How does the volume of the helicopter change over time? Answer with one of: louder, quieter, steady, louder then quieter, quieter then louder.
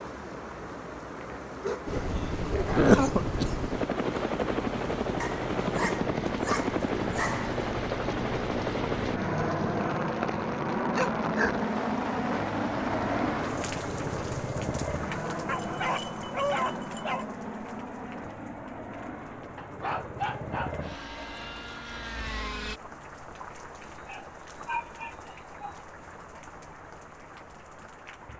quieter.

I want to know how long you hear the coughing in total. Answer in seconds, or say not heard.
2 s.